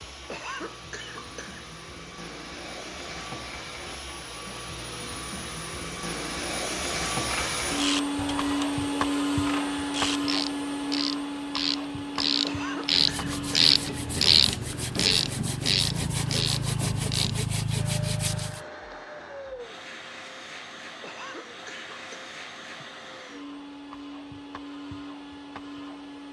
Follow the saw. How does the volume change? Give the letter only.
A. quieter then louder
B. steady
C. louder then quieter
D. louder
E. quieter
D.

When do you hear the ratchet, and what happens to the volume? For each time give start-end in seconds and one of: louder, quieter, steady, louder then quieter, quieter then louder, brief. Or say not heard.
7.2-17.4 louder then quieter.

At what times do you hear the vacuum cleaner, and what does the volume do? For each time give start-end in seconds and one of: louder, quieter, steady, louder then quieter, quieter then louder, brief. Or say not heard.
0.0-26.2 louder then quieter.